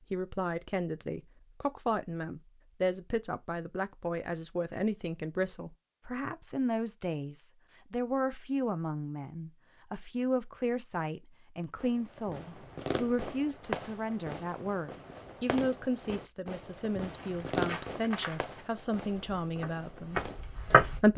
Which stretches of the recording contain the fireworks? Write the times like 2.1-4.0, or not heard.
11.8-20.4.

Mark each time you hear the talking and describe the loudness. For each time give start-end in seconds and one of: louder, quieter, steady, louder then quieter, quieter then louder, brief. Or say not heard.
0.1-21.1 steady.